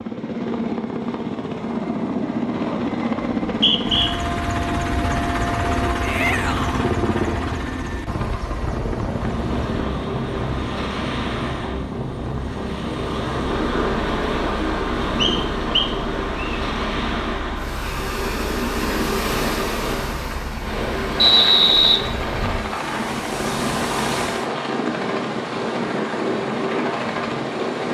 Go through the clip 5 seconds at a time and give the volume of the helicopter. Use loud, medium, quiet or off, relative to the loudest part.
loud, loud, medium, medium, medium, medium.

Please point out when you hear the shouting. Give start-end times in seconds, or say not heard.
6.0-6.8.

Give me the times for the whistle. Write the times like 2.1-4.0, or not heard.
3.5-4.1, 15.2-16.6, 21.1-22.6.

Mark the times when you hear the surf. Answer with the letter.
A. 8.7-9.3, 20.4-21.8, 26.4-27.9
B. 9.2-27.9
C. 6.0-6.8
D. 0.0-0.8
B.